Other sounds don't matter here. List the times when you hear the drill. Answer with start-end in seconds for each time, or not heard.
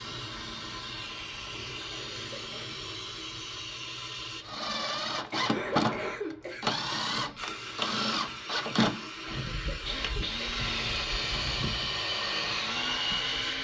4.4-13.5.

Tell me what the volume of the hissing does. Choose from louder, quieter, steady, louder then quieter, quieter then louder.
steady.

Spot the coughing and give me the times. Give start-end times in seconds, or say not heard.
1.9-2.8, 5.3-6.7, 9.2-10.4.